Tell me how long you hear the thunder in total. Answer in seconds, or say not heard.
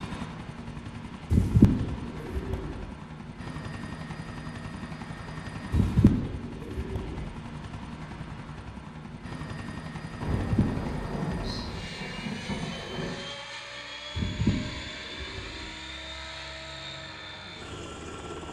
3 s.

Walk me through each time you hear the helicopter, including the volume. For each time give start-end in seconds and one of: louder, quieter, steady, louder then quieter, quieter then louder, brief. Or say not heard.
0.0-18.4 steady.